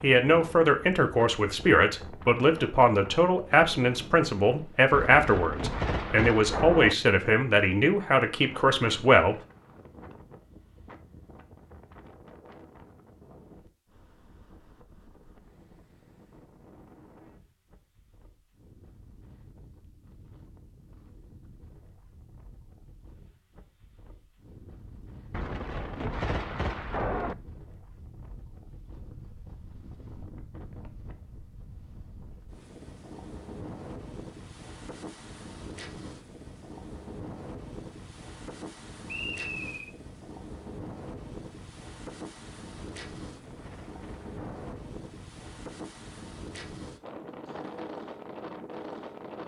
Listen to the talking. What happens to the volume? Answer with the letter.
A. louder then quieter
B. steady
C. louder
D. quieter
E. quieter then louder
B.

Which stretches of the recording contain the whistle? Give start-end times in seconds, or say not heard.
39.0-39.9.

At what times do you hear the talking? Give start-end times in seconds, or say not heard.
0.0-9.3.